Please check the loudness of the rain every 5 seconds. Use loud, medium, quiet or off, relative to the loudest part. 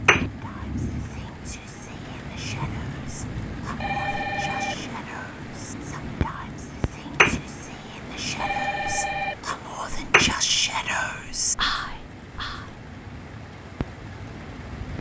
loud, loud, medium.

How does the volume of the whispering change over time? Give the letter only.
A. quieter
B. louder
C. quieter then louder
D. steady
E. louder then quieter
B.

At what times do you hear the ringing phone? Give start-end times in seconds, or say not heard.
3.8-4.8, 8.3-9.4.